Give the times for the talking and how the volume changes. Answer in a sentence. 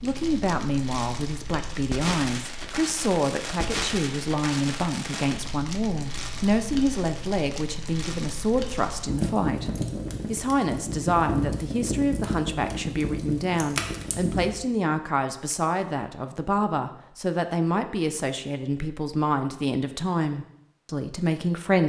You can hear the talking from 0.0 to 21.8 s, at a steady volume.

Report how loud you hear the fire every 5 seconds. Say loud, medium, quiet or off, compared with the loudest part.
loud, loud, loud, off, off.